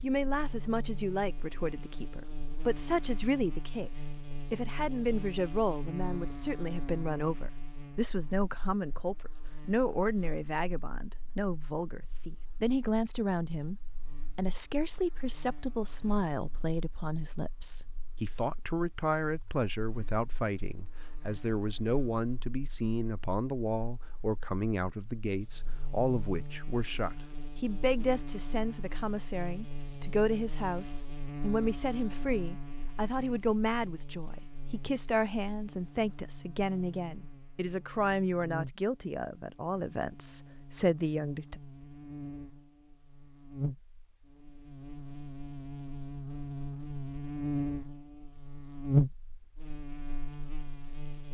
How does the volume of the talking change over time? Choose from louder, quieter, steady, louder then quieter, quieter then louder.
steady.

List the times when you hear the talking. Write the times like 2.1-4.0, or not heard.
0.0-41.6.